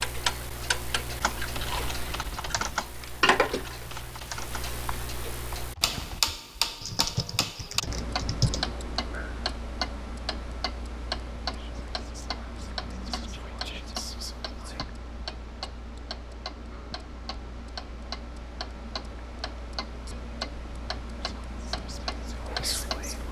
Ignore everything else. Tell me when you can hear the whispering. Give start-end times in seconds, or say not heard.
11.5-14.8, 21.1-23.2.